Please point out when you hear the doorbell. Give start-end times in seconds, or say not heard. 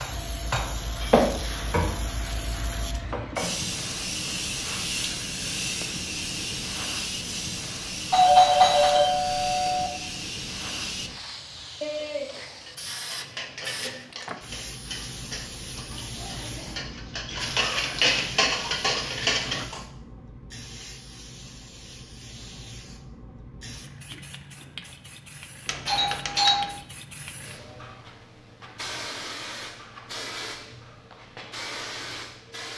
8.1-9.9, 25.6-26.8.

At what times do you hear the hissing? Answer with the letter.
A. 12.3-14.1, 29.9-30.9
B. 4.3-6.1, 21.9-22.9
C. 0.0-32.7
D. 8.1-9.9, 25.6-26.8
C.